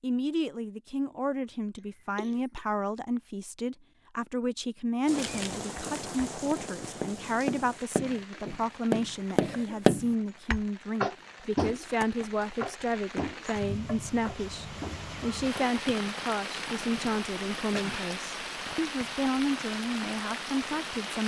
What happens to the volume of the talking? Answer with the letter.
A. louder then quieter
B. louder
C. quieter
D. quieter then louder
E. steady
E.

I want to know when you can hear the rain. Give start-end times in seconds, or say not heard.
5.0-21.2.